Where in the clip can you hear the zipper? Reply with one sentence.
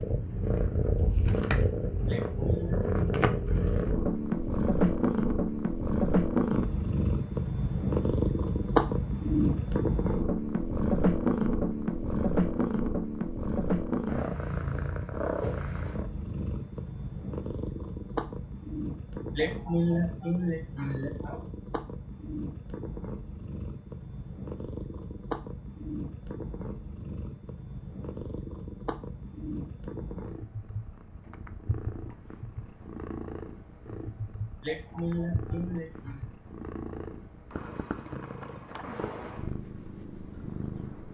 You can't hear the zipper here.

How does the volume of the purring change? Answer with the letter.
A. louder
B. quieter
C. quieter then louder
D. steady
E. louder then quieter
B.